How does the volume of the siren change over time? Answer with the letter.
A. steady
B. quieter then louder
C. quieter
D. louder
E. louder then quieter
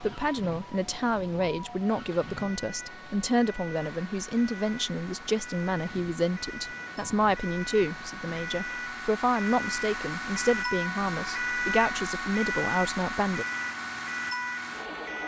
D.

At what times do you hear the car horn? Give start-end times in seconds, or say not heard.
not heard.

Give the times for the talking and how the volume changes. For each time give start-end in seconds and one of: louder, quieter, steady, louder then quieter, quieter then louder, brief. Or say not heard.
0.0-13.4 steady.